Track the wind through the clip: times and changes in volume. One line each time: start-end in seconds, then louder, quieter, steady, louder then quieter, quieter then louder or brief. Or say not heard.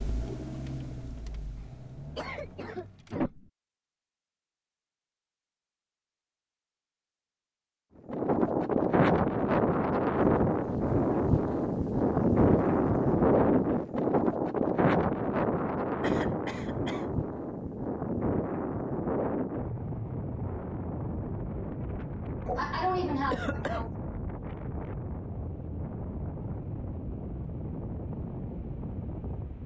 8.1-29.6 quieter.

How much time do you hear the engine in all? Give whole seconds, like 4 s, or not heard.
3 s.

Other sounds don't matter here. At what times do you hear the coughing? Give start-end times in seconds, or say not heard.
1.6-3.5, 16.0-17.1, 22.4-23.9.